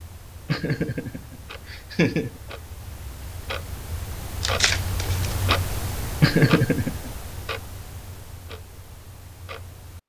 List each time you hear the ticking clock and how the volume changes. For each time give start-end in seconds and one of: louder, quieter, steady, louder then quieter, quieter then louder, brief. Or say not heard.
0.0-10.0 louder then quieter.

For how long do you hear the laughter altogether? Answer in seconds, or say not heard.
3 s.